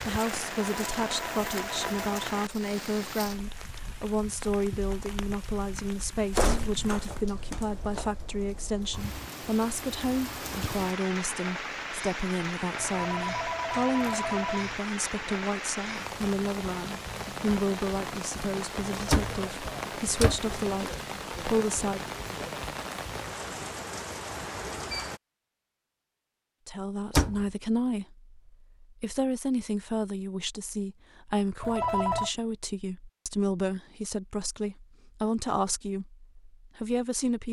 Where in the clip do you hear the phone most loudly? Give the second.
32 s.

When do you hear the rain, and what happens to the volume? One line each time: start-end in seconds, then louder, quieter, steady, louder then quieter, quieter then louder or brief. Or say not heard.
0.0-25.2 quieter then louder.